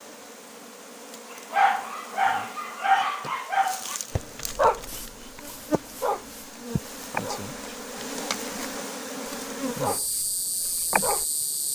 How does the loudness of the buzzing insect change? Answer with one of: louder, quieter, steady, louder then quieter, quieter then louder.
louder.